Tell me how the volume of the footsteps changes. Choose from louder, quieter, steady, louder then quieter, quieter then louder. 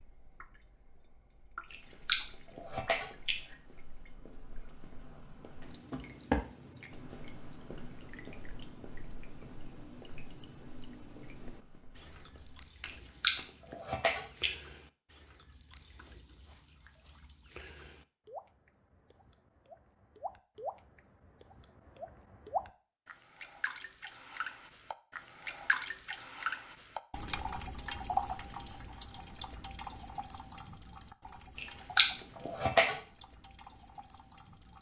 louder then quieter.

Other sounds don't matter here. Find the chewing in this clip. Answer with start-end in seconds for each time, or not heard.
1.7-3.4, 12.8-14.5, 31.6-33.0.